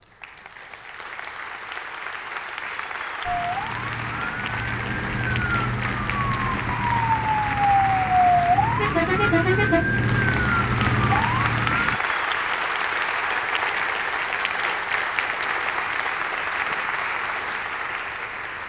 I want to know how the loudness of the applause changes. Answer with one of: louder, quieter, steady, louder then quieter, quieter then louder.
louder.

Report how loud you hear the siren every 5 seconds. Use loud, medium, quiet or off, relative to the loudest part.
medium, loud, loud, off.